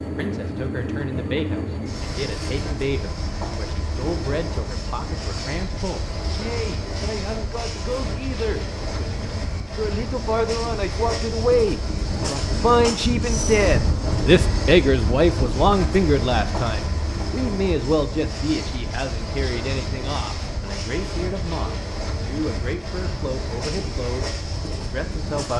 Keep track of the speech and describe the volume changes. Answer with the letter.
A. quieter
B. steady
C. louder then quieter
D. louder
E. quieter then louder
C.